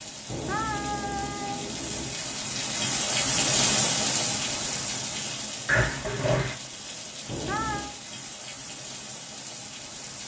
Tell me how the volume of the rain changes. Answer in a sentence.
The volume of the rain goes up, then down.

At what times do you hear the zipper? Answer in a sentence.
The zipper can be heard from 5.7 to 6.5 s.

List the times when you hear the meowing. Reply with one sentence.
The meowing can be heard from 0.2 to 2.2 s and from 7.2 to 7.9 s.